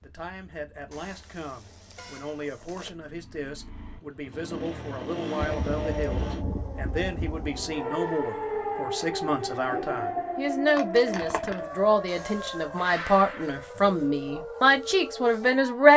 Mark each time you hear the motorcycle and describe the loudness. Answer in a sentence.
You can hear the motorcycle from 0.0 to 6.5 s, getting louder.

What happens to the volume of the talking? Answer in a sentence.
The volume of the talking goes up.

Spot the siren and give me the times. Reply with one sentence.
You can hear the siren from 5.3 to 15.9 s.